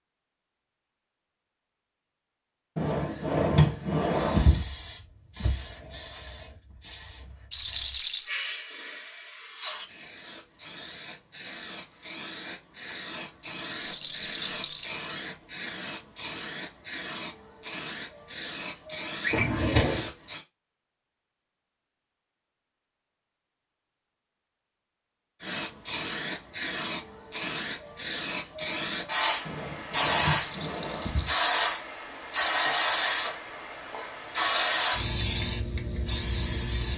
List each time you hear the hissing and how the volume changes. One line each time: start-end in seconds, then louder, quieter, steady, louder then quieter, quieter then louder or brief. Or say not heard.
4.1-20.4 louder
25.4-36.9 steady.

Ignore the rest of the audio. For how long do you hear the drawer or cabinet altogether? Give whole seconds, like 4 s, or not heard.
5 s.